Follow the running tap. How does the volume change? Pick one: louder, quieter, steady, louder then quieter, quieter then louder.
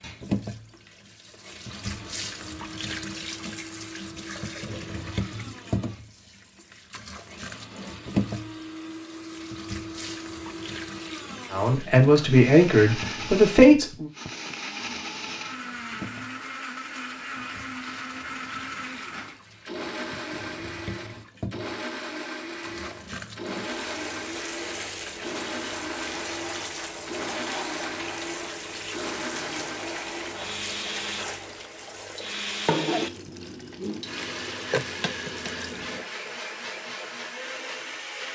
quieter then louder.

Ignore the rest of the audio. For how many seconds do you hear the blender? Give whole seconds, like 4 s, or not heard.
38 s.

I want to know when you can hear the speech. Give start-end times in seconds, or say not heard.
11.5-14.1.